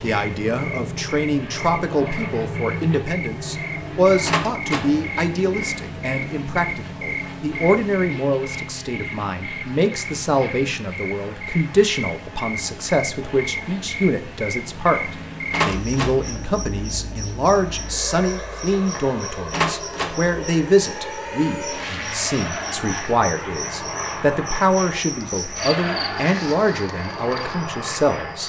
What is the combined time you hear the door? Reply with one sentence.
The door can be heard for 2 seconds in total.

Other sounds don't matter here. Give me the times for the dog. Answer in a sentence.
You can't hear the dog here.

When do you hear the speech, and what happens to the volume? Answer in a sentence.
You can hear the speech from 0.0 to 28.4 s, at a steady volume.